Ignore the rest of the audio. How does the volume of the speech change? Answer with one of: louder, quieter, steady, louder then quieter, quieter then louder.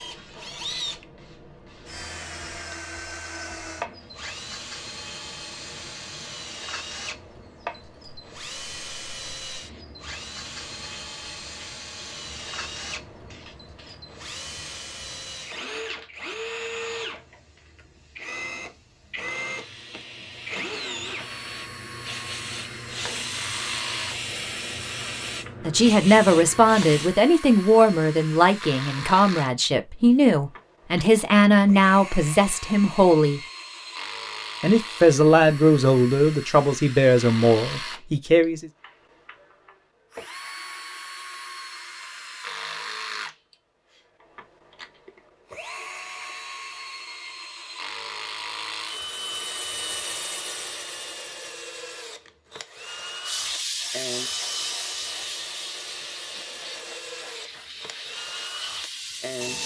steady.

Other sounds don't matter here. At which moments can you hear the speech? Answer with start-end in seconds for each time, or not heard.
25.6-33.4, 34.6-38.6.